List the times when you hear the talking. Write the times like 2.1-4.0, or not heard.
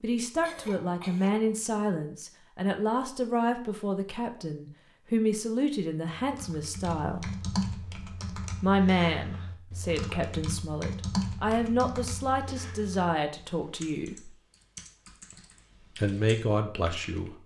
0.0-7.3, 8.6-14.3, 15.9-17.4.